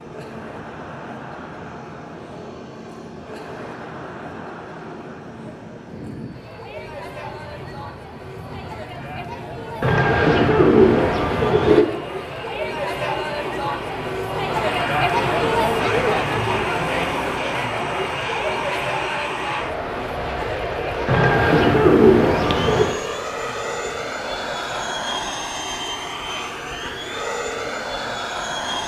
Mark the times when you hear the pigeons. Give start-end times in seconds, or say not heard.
9.8-11.8, 21.1-22.9.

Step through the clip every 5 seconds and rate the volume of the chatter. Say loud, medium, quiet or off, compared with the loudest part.
quiet, quiet, loud, loud, medium, quiet.